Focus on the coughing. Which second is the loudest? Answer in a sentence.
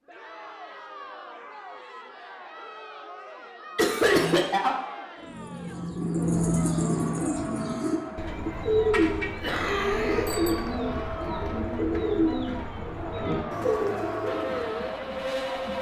The volume of the coughing peaks at 4 seconds.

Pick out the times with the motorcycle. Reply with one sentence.
You can hear the motorcycle from 14.2 to 15.7 s.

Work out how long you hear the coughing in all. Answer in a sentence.
You can hear the coughing for 2 seconds altogether.